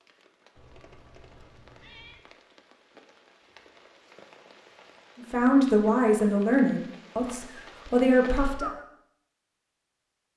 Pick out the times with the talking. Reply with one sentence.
You can hear the talking from 5.2 to 8.7 s.